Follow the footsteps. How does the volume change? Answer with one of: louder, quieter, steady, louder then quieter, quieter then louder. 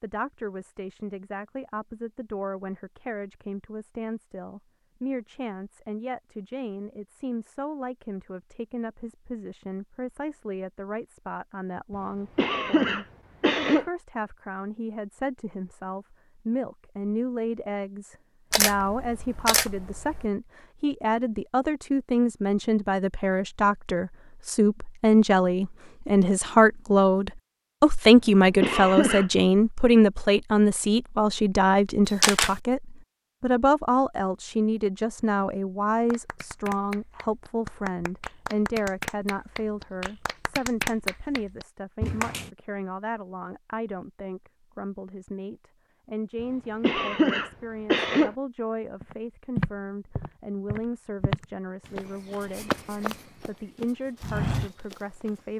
quieter then louder.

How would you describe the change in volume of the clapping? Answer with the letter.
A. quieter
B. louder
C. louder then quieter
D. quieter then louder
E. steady
B.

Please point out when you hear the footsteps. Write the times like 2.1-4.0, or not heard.
49.0-55.3.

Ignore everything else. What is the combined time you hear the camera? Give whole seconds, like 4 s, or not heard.
2 s.